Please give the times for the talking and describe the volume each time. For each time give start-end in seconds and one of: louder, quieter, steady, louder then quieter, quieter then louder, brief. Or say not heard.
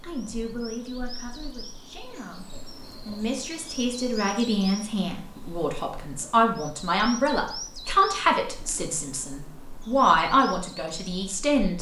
0.0-11.7 louder.